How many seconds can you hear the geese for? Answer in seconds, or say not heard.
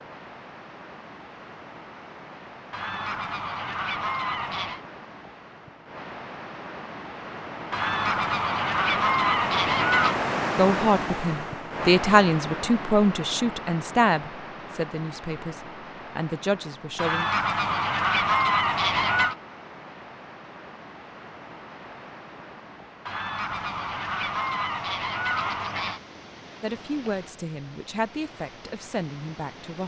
10 s.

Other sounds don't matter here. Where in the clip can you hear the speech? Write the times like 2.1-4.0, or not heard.
10.6-17.2, 26.6-29.8.